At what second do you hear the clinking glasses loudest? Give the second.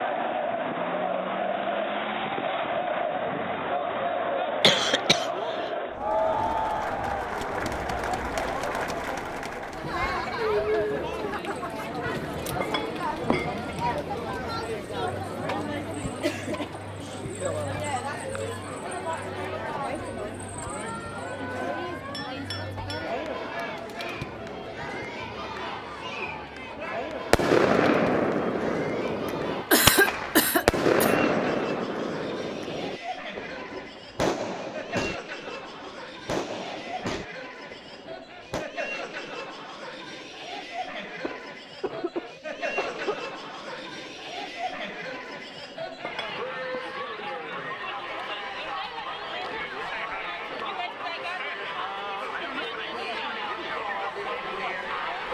13 s.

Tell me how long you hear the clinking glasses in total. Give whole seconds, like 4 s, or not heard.
3 s.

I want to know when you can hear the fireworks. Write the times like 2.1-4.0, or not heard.
27.3-38.6.